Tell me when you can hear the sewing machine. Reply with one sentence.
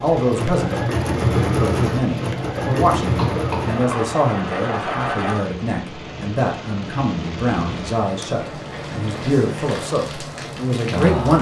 The sewing machine can be heard from 0.0 to 5.5 s.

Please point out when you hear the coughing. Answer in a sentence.
You can hear the coughing from 3.1 to 4.0 s.